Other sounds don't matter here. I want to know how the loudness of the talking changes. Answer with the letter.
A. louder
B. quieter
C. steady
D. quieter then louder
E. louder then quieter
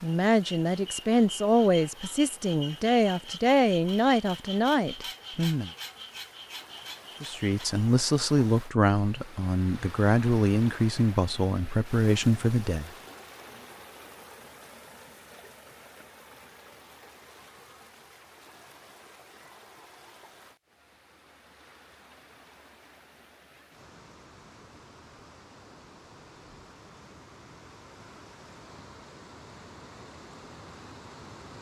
C.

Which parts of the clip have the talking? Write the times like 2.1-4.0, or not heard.
0.0-5.7, 7.2-12.9.